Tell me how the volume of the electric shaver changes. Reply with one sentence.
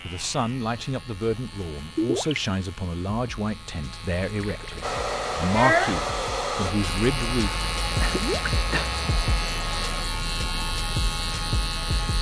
The volume of the electric shaver goes up.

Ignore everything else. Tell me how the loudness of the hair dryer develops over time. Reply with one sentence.
The volume of the hair dryer goes down.